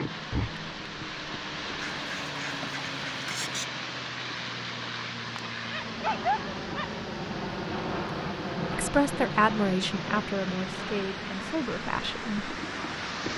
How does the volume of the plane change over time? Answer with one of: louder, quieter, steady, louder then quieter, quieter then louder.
louder then quieter.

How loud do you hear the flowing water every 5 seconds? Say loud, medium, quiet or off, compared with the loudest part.
loud, medium, loud.